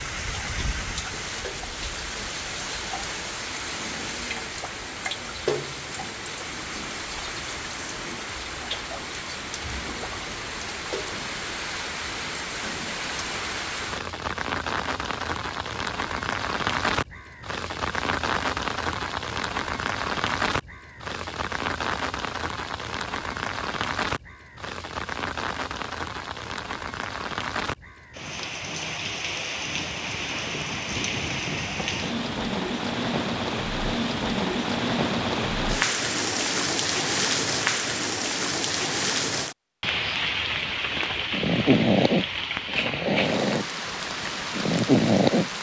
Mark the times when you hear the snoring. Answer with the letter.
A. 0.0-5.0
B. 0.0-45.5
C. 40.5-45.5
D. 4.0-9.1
C.